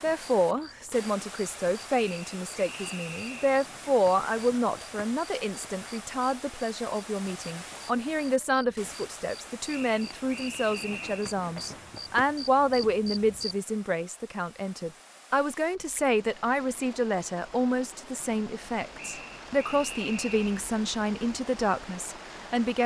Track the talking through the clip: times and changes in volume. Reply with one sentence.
You can hear the talking from 0.0 to 22.8 s, at a steady volume.